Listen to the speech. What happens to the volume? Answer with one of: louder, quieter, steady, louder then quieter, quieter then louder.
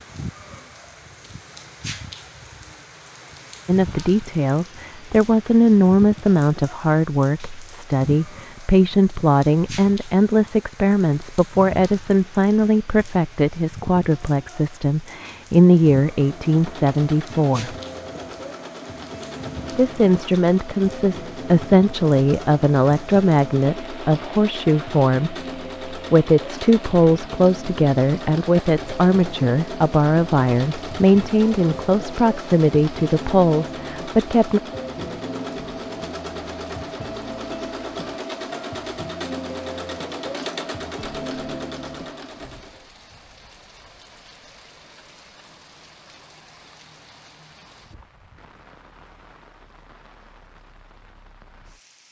steady.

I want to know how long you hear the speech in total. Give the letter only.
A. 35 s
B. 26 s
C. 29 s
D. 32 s
C.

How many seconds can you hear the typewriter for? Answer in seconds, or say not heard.
not heard.